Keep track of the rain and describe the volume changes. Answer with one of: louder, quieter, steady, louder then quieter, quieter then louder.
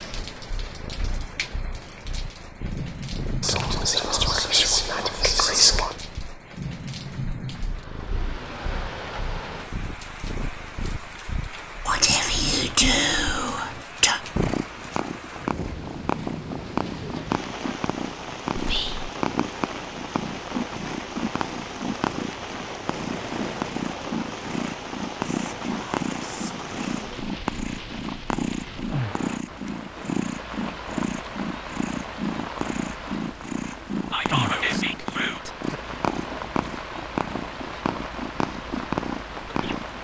steady.